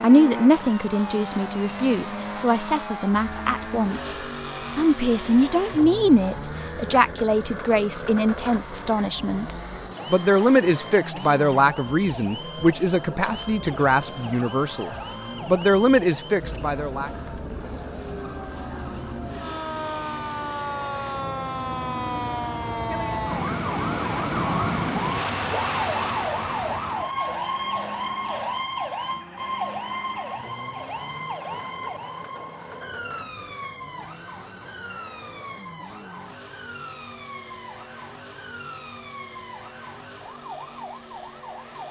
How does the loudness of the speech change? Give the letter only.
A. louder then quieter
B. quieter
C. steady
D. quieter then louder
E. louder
C.